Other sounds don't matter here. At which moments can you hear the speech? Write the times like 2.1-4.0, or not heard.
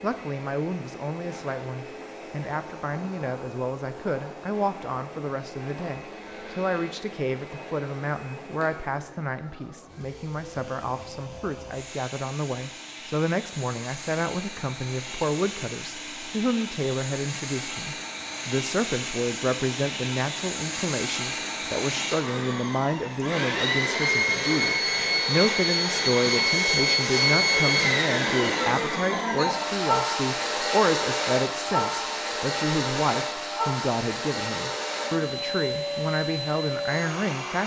0.0-37.6.